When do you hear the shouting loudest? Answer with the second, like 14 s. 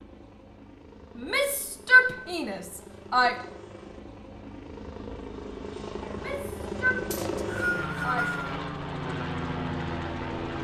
2 s.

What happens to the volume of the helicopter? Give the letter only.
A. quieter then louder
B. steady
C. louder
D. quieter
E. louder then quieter
C.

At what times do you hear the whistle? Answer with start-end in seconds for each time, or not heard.
7.1-8.6.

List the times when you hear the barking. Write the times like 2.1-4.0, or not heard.
not heard.